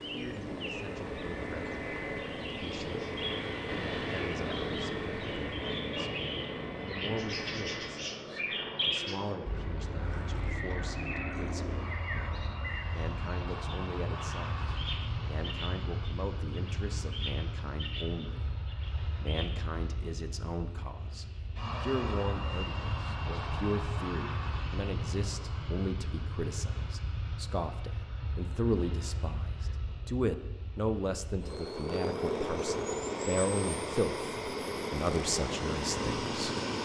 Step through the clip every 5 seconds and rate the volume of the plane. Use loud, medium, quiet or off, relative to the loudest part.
loud, medium, medium, medium, medium, medium, loud, loud.